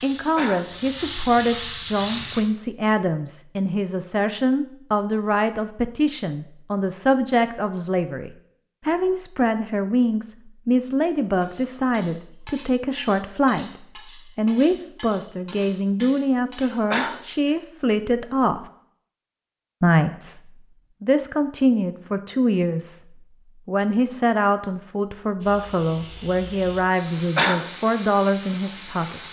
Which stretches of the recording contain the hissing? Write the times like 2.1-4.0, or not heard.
0.0-2.5, 25.4-29.2.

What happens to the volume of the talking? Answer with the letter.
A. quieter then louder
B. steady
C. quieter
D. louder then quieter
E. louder
B.